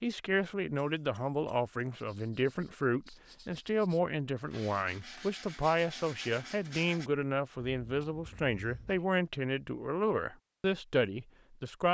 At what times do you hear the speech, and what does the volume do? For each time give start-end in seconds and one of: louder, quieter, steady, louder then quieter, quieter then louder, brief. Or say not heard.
0.0-11.8 steady.